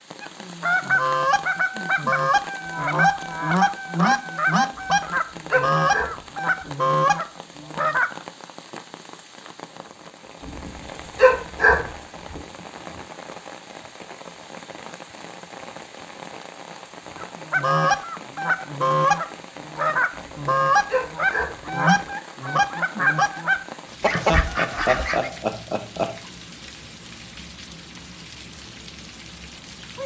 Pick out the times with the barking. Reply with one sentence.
You can hear the barking from 4.7 to 6.7 s, from 10.4 to 12.4 s and from 20.1 to 22.1 s.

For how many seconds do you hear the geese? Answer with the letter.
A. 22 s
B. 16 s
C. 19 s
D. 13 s
B.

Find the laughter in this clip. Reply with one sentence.
You can hear the laughter from 24.1 to 26.1 s.